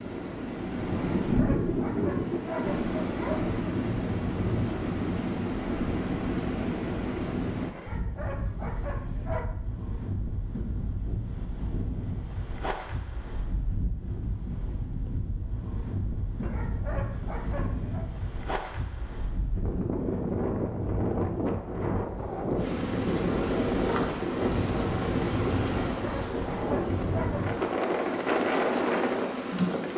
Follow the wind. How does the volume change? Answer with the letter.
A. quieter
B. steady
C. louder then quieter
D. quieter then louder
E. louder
D.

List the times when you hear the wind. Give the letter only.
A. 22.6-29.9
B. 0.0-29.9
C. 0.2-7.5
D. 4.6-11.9
B.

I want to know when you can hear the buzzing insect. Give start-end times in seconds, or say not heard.
22.6-29.9.